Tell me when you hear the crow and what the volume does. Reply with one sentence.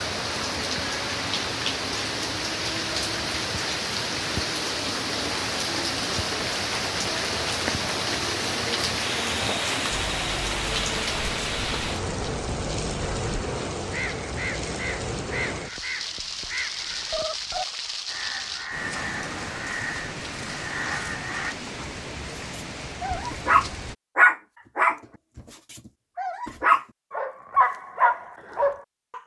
The crow can be heard from 10.0 to 21.6 s, getting louder.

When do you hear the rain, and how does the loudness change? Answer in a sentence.
You can hear the rain from 0.0 to 23.9 s, getting quieter.